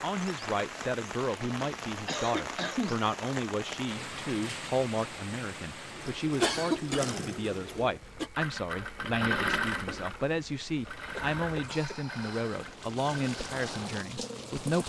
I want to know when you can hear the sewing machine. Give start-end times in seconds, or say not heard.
5.8-14.7.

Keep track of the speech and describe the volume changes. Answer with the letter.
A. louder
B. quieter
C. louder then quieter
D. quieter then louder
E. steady
E.